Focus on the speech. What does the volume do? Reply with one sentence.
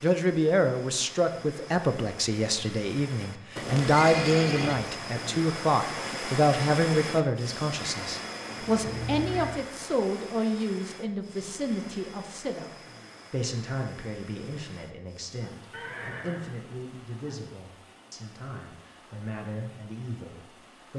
The loudness of the speech goes down.